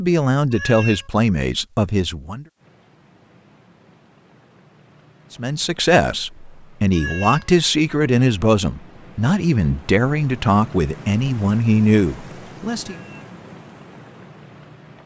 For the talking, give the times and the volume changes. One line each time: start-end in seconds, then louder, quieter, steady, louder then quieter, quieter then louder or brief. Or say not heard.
0.0-2.5 brief
5.3-12.9 steady.